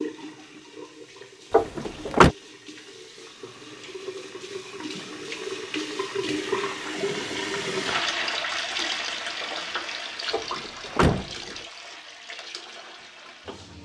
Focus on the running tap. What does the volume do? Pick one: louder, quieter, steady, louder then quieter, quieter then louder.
louder then quieter.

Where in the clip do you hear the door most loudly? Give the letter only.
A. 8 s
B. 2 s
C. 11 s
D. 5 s
B.